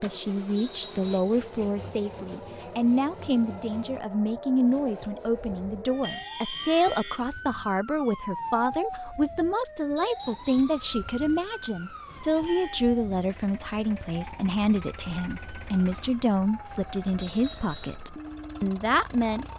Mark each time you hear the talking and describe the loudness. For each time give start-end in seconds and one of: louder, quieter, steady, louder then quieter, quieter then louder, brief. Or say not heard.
0.0-19.4 steady.